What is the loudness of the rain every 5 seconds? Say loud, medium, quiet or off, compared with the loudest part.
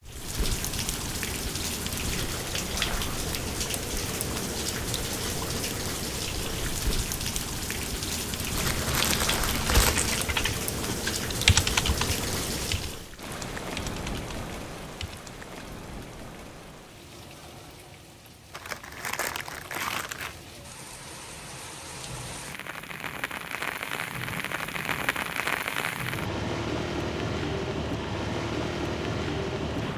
loud, loud, loud, quiet, medium, loud.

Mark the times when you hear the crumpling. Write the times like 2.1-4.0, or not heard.
8.5-10.2, 18.5-20.4.